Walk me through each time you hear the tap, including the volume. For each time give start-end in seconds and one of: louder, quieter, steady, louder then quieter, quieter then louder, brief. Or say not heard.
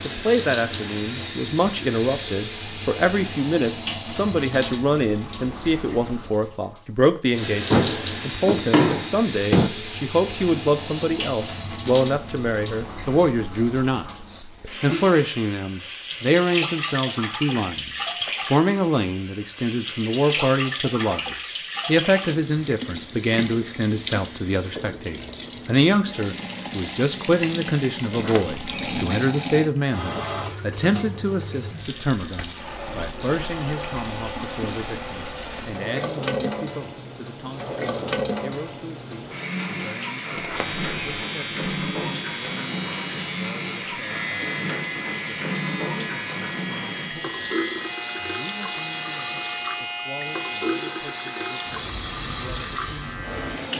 0.0-53.7 steady.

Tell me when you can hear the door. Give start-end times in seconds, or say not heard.
7.7-9.7, 28.1-29.1, 40.4-41.2.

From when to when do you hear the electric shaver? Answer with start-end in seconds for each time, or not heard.
40.5-53.7.